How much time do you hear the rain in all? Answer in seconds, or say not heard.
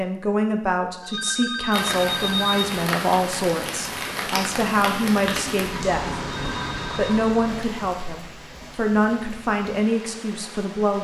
9 s.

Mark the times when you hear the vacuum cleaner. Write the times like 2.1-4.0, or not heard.
not heard.